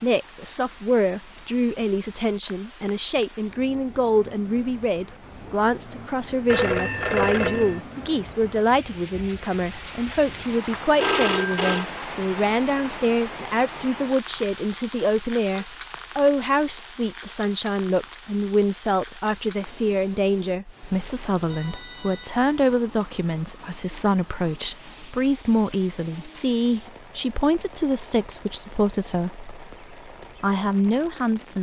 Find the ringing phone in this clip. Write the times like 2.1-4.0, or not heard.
6.5-7.8, 10.9-11.9, 21.5-22.8.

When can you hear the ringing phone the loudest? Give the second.
11 s.